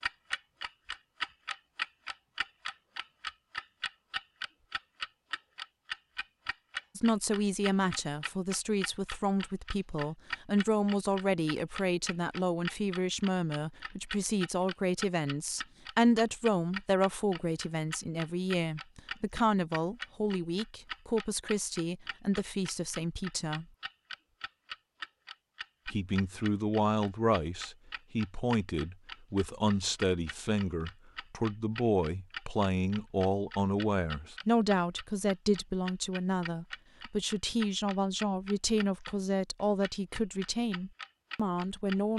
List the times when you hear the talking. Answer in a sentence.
The talking can be heard from 7.0 to 23.6 s and from 25.9 to 42.1 s.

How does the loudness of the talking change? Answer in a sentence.
The loudness of the talking stays about the same.